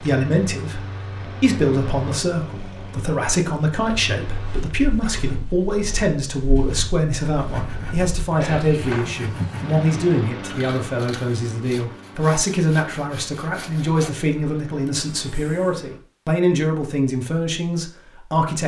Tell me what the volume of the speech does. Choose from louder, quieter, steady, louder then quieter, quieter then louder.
steady.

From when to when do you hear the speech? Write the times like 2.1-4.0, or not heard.
0.0-18.6.